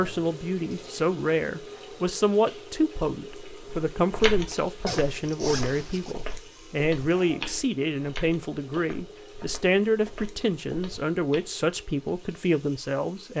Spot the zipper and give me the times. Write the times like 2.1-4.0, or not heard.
4.8-6.2.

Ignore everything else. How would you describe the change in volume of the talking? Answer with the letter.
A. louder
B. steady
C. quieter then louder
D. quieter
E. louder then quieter
B.